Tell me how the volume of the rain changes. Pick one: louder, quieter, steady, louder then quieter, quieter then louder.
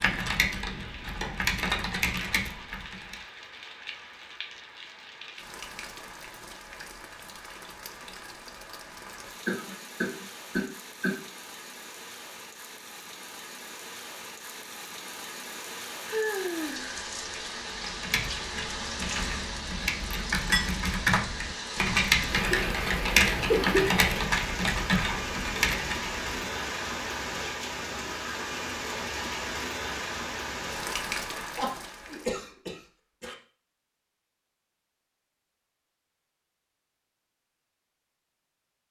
louder.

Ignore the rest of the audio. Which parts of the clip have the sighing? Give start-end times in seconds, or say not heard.
16.1-17.1.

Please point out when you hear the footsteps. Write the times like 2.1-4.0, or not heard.
not heard.